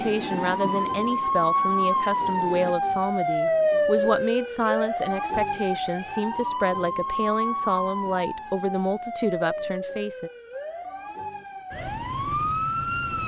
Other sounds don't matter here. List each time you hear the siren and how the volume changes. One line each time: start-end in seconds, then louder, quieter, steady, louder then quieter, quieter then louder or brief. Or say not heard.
0.0-13.2 quieter.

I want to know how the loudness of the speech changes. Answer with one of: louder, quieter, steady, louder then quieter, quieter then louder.
steady.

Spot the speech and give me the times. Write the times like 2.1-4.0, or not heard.
0.0-10.3.